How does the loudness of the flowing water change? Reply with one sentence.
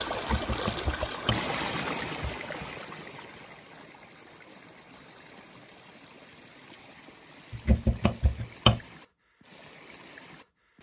The volume of the flowing water goes down.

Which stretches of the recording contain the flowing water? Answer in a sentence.
You can hear the flowing water from 0.0 to 10.7 s.